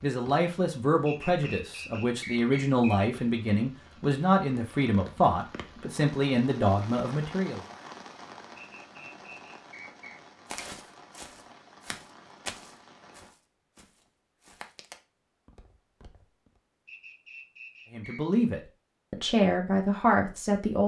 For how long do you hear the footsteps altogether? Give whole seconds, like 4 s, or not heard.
6 s.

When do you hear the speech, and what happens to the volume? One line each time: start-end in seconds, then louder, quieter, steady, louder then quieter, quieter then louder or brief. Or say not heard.
0.0-7.6 steady
17.9-20.8 brief.